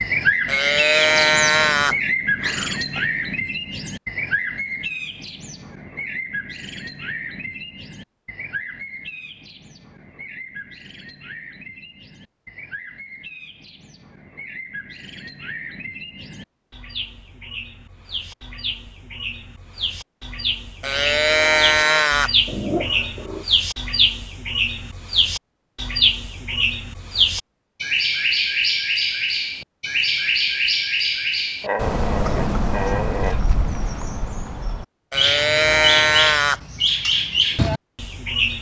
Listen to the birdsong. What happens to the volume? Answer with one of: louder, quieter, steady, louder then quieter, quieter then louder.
quieter then louder.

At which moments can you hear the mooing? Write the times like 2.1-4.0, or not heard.
0.5-1.9, 20.8-22.3, 35.1-36.6.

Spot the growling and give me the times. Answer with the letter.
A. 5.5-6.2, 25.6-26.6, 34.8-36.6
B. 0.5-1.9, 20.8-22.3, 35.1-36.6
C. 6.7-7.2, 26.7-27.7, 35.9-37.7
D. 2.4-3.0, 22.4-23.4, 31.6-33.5
D.